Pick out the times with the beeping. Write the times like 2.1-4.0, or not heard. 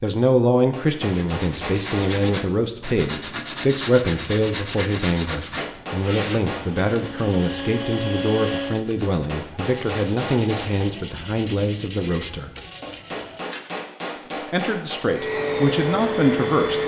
not heard.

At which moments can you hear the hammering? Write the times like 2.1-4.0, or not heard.
0.7-2.4, 5.3-6.8, 9.0-10.8, 12.8-15.0.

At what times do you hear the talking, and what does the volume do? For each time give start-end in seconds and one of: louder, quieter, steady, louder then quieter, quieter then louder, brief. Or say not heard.
0.0-12.5 steady
14.4-16.8 brief.